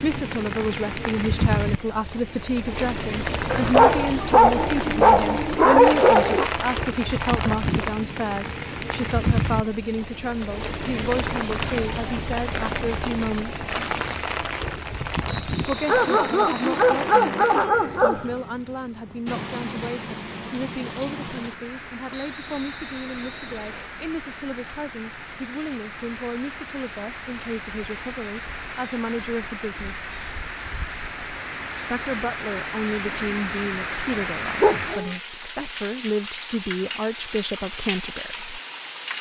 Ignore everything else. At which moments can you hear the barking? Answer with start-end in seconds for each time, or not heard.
3.5-6.5, 15.8-18.4, 34.6-35.1.